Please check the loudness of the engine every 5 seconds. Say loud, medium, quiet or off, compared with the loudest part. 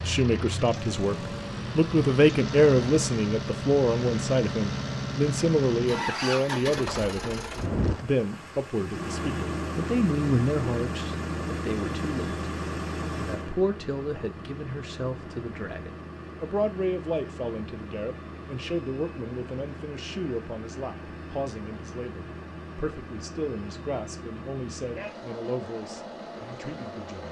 loud, loud, loud, medium, medium, medium.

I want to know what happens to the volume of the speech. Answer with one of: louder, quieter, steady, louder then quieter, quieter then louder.
quieter.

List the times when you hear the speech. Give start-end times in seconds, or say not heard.
0.0-12.3, 13.1-27.2.